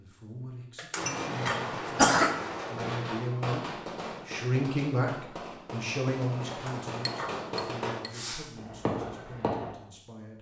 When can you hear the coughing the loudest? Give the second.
2 s.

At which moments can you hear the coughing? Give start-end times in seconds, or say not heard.
0.8-2.4, 6.5-7.4.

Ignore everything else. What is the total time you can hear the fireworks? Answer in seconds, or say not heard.
9 s.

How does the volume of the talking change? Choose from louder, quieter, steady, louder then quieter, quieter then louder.
louder then quieter.